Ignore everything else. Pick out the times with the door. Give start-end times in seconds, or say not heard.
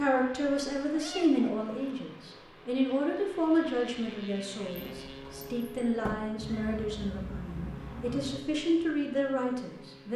4.7-6.2.